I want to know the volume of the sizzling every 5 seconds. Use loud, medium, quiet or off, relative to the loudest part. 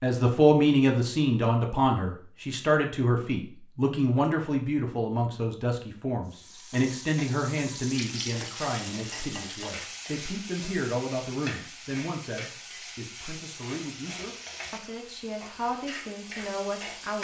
off, loud, loud, loud.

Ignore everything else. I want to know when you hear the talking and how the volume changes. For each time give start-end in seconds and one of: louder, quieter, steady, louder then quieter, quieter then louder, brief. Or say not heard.
0.0-17.1 quieter.